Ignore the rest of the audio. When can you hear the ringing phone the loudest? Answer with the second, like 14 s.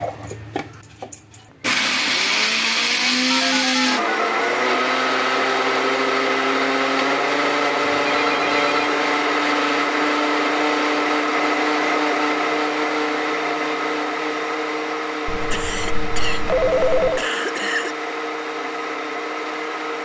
17 s.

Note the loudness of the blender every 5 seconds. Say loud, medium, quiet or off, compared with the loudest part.
loud, loud, loud, medium.